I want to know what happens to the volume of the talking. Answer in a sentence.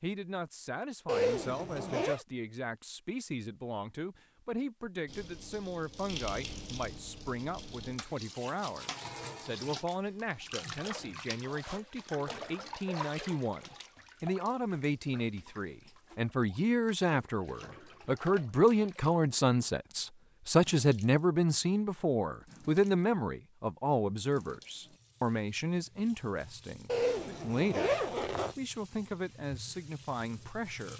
The volume of the talking goes up, then down.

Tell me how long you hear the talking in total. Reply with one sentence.
You can hear the talking for 31 seconds altogether.